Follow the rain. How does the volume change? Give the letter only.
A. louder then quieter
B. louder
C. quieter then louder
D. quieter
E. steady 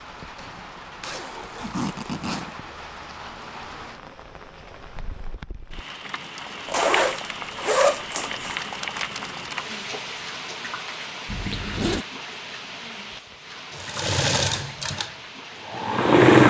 A.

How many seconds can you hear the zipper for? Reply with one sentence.
The zipper can be heard for 4 seconds in total.